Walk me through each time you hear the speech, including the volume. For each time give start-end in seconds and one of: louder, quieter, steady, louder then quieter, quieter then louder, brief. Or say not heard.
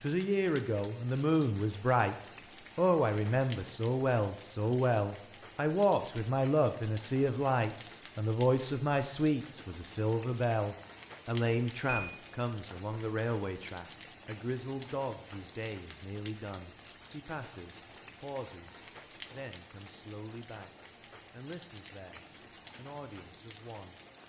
0.0-20.7 quieter
21.3-24.0 brief.